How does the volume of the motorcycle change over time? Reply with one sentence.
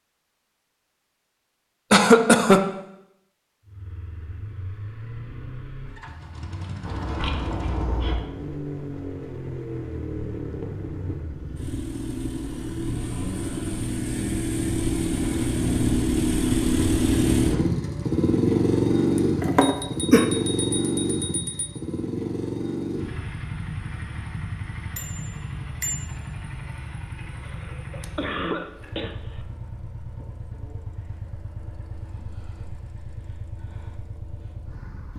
The loudness of the motorcycle goes up, then down.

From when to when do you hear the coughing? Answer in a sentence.
The coughing can be heard from 1.9 to 2.6 s, from 19.4 to 20.2 s and from 27.4 to 29.1 s.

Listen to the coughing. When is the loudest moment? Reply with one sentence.
The volume of the coughing peaks at 2 seconds.